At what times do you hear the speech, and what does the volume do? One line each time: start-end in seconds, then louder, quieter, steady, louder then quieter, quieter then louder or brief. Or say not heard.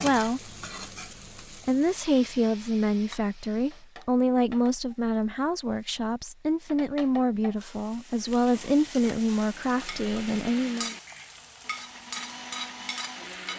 0.0-0.5 brief
1.6-10.9 steady.